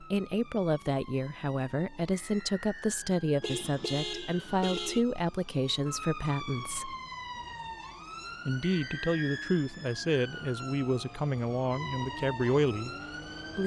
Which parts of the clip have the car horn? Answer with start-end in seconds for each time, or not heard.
3.4-5.0.